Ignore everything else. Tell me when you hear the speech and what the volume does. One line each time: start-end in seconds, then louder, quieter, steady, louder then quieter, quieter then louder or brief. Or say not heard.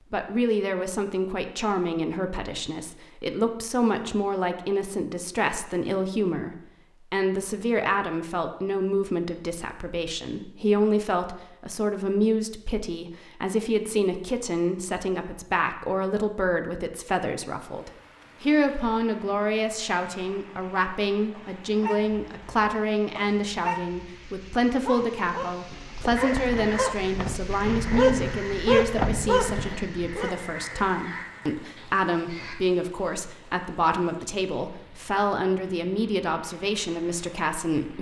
0.1-37.9 steady.